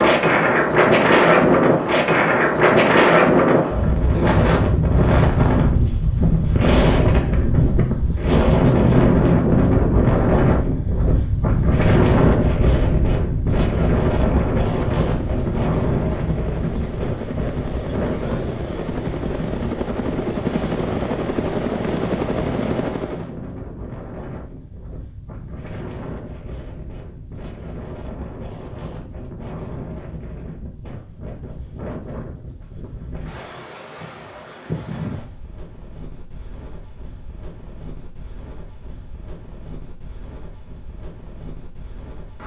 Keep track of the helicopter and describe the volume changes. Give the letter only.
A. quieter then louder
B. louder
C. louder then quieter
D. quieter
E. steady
B.